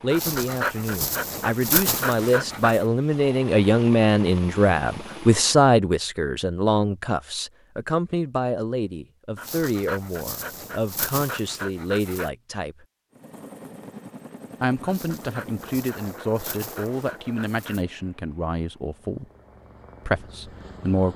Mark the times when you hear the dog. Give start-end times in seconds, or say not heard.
0.1-2.9, 9.3-12.3, 14.8-17.9.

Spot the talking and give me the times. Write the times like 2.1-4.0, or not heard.
0.0-12.8, 14.6-19.2, 20.1-21.1.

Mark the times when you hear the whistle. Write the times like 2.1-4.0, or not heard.
not heard.